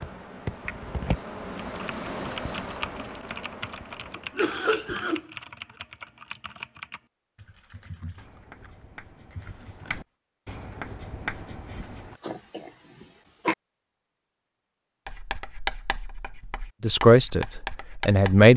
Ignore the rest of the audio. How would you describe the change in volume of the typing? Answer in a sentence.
The volume of the typing goes down.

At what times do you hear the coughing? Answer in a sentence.
The coughing can be heard from 4.2 to 5.3 s and from 12.2 to 13.6 s.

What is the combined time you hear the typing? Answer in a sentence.
You can hear the typing for 10 seconds altogether.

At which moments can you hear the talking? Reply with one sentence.
You can hear the talking from 16.8 to 17.4 s and from 18.1 to 18.5 s.